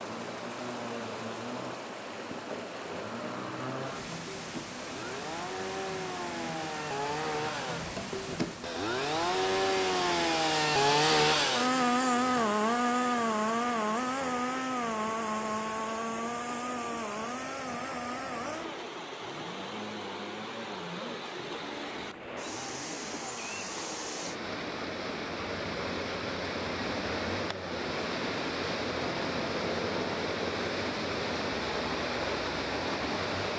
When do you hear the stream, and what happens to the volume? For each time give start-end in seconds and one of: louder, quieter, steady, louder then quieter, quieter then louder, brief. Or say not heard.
0.0-33.5 louder.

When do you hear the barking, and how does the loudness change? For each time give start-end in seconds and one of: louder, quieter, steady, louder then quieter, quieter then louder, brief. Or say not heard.
not heard.